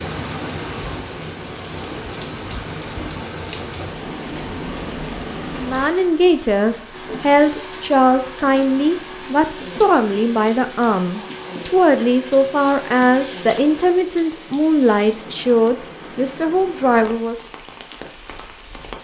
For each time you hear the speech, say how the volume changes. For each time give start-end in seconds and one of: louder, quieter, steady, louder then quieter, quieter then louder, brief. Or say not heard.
5.5-17.4 steady.